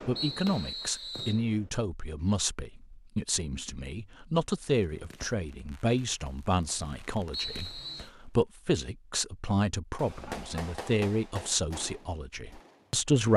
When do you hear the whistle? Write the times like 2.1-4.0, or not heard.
0.1-1.4, 7.3-8.1.